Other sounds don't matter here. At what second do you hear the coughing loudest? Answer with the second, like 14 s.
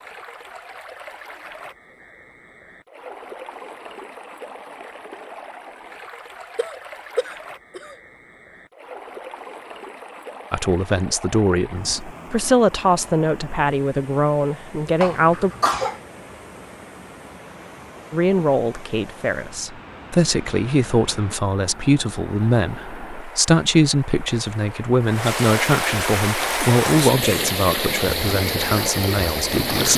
16 s.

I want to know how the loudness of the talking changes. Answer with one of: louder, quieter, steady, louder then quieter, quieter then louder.
steady.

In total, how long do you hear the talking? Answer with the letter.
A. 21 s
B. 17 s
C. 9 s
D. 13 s
B.